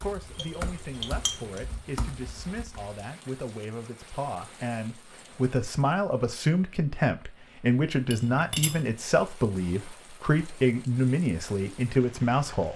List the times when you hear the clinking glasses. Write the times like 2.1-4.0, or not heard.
0.3-1.6, 8.1-8.8.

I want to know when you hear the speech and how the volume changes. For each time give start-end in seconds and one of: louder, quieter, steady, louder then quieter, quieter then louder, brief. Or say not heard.
0.0-12.7 louder.